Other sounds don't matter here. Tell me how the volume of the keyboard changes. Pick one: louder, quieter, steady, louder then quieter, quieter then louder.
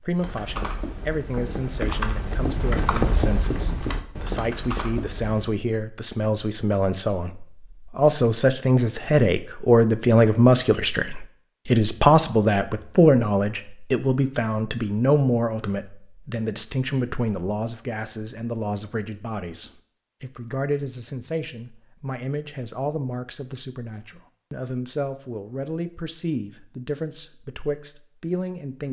louder then quieter.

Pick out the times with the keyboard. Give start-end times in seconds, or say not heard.
0.1-5.4.